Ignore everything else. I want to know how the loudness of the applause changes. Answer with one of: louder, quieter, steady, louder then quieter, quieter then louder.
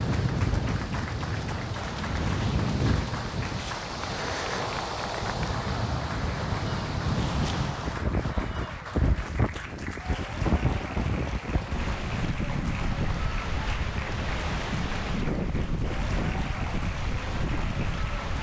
steady.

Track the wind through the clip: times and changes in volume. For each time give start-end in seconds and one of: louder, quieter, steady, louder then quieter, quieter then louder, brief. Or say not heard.
0.0-18.3 steady.